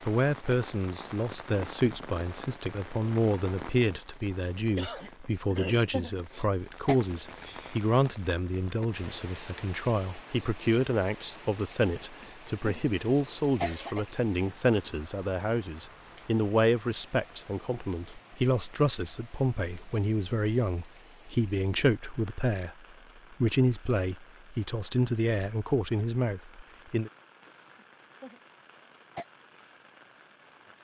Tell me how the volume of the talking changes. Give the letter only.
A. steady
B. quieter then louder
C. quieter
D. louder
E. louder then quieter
A.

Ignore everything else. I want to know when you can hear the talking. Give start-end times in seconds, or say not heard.
0.0-22.8, 23.4-27.1.